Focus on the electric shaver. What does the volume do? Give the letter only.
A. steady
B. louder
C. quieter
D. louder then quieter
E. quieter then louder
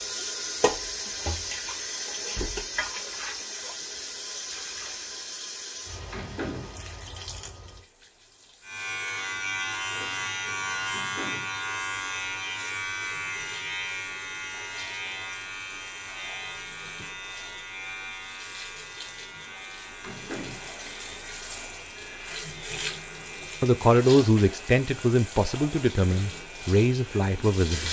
C.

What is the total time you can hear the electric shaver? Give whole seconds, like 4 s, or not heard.
19 s.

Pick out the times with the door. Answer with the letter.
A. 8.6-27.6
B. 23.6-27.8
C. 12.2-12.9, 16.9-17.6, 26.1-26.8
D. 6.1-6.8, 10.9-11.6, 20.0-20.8
D.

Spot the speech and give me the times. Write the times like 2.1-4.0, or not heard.
23.6-27.8.